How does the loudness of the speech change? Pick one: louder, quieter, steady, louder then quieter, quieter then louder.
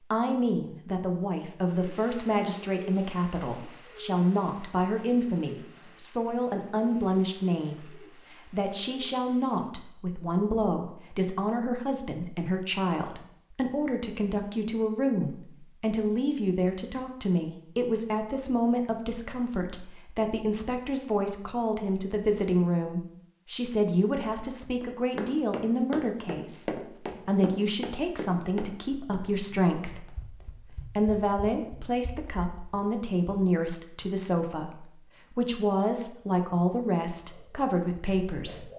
steady.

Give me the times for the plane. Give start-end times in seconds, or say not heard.
not heard.